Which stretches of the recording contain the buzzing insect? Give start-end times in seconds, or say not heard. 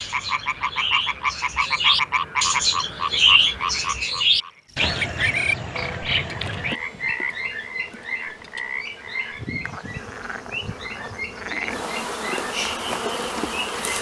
6.2-13.9.